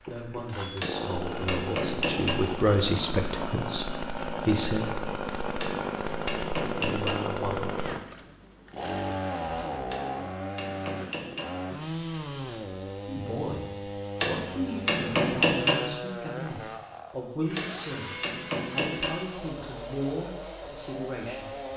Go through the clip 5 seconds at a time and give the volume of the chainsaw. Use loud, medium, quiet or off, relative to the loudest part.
loud, loud, loud, medium, medium.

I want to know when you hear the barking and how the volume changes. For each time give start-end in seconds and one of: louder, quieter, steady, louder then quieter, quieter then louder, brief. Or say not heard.
not heard.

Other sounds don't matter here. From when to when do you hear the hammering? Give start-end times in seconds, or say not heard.
0.8-2.4, 5.6-7.2, 9.9-11.4, 14.2-15.8, 17.6-19.1.